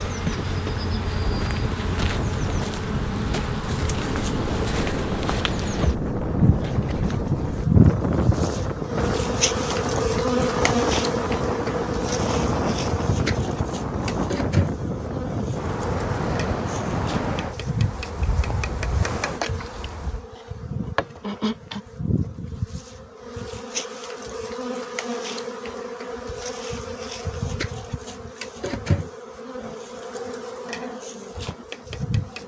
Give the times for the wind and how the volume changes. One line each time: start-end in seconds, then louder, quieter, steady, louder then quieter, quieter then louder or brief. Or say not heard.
0.0-20.2 steady.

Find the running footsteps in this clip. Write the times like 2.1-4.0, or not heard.
not heard.